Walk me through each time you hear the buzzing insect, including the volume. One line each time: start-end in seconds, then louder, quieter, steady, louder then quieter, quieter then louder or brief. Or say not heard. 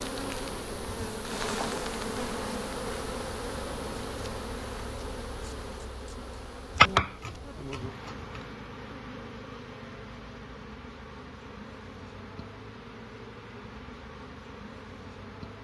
0.0-15.5 quieter.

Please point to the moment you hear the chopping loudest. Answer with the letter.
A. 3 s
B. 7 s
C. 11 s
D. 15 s
B.